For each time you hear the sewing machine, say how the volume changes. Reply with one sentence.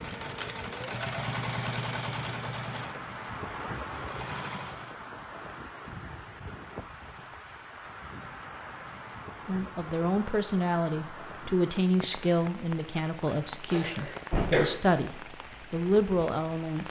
The sewing machine can be heard from 0.0 to 5.0 s, getting quieter then louder.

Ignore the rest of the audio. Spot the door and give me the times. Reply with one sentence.
You can hear the door from 13.8 to 14.7 s.